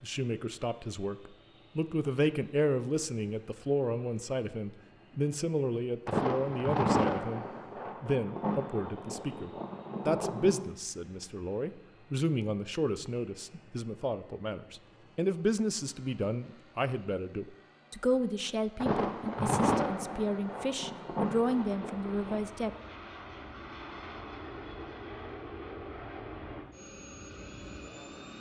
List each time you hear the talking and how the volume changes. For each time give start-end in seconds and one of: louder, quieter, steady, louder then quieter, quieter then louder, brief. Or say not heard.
0.0-22.7 steady.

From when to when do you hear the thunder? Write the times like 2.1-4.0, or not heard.
6.0-10.7, 18.8-22.4.